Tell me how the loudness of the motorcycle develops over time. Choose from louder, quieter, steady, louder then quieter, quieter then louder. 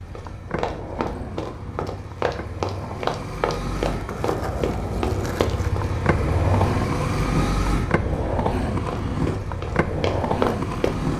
louder then quieter.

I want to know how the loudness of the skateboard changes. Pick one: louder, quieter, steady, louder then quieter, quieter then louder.
louder.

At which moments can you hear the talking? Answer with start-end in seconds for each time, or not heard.
not heard.